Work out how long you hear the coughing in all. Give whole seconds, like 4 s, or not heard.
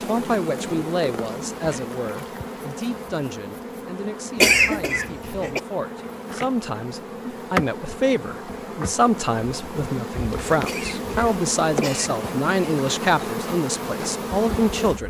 3 s.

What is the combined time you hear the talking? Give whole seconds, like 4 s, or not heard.
15 s.